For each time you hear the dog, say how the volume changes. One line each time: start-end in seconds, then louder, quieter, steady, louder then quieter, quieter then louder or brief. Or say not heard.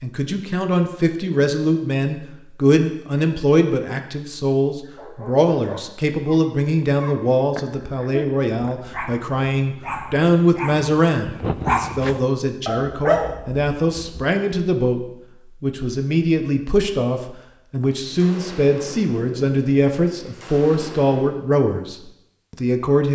4.8-14.2 louder.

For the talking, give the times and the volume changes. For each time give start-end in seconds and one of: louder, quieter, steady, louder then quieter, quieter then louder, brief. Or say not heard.
0.0-23.1 steady.